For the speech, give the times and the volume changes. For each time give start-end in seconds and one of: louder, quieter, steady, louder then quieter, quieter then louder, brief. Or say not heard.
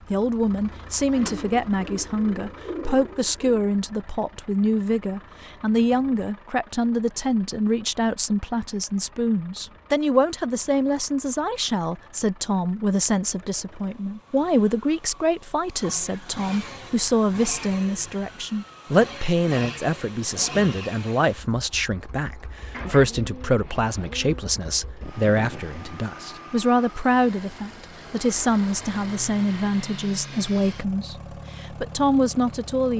0.1-32.9 steady.